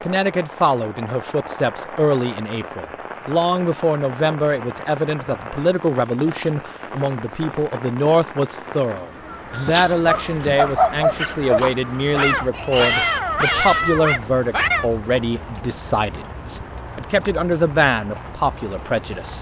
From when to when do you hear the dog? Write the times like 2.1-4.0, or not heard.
9.7-14.8.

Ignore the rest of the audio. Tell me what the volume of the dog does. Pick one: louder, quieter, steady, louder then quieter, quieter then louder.
steady.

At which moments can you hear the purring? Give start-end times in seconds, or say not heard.
not heard.